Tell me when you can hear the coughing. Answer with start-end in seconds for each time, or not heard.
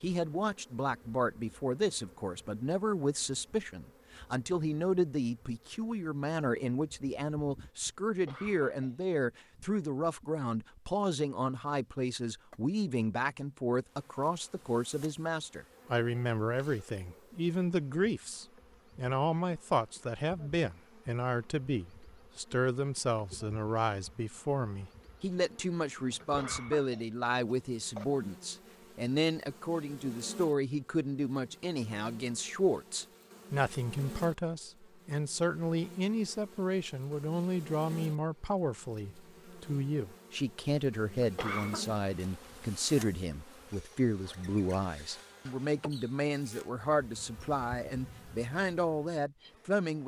8.1-8.9, 26.2-28.1, 41.2-41.9.